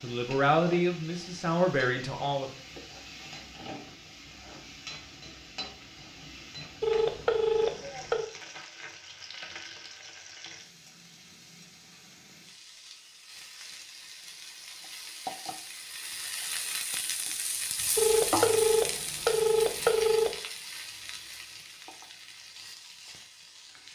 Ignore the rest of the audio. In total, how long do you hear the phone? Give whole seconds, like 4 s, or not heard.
4 s.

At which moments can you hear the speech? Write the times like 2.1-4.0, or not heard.
0.0-2.5.